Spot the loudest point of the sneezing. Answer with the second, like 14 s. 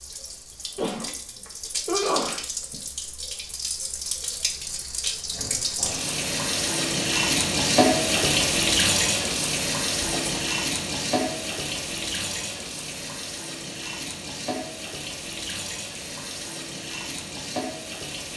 2 s.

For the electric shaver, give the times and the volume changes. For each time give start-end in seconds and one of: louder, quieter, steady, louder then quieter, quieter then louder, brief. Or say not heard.
not heard.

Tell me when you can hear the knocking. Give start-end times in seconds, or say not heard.
not heard.